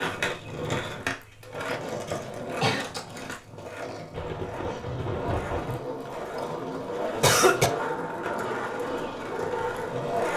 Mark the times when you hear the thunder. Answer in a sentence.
You can hear the thunder from 4.1 to 5.8 s.